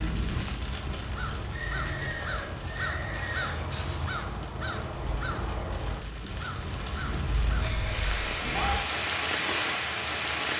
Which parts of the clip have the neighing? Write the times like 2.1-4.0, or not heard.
1.5-3.5, 7.6-8.8.